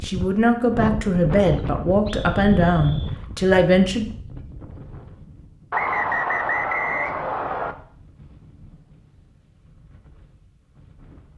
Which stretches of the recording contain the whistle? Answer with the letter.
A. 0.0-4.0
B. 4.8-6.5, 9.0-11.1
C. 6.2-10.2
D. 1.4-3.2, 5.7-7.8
D.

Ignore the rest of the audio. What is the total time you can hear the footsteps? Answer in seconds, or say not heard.
not heard.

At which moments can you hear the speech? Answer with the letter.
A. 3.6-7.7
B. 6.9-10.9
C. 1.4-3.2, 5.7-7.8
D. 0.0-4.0
D.